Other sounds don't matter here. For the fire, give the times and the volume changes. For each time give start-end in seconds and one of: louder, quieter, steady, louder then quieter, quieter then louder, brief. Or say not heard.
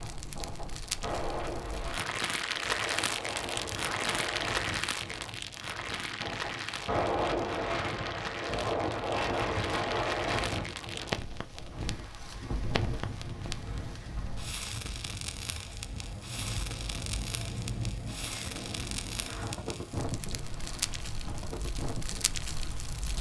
0.0-23.1 quieter.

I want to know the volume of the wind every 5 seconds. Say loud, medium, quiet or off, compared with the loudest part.
medium, loud, medium, medium, medium.